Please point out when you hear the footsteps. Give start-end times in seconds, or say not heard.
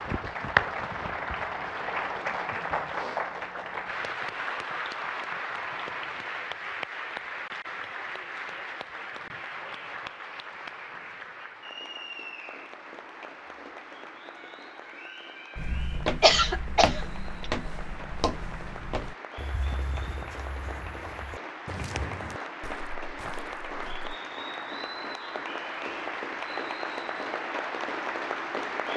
15.6-24.1.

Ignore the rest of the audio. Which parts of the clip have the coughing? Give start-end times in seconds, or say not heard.
15.7-17.4.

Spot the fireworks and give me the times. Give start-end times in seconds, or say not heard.
not heard.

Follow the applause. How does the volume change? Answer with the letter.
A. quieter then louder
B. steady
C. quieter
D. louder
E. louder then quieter
A.